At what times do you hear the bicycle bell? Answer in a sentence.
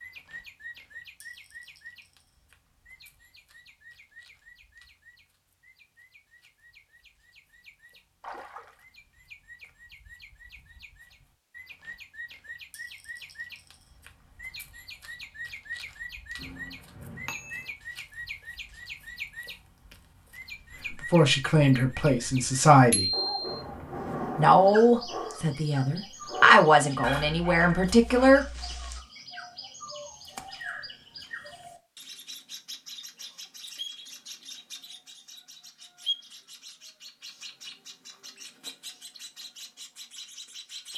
The bicycle bell can be heard from 16.4 to 17.7 s and from 22.9 to 23.6 s.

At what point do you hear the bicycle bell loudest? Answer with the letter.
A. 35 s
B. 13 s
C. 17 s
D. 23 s
D.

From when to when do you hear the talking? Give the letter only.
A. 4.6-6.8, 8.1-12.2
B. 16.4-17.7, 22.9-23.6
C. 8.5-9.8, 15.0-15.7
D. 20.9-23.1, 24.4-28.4
D.